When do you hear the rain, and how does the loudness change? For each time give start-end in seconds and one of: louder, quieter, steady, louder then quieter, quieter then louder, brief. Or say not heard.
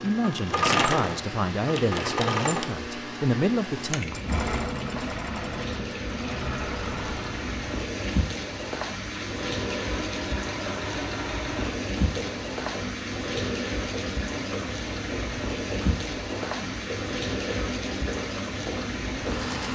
0.0-19.7 louder.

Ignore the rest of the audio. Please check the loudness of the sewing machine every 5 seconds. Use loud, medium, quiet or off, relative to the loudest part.
loud, medium, medium, medium.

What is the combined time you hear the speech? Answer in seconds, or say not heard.
4 s.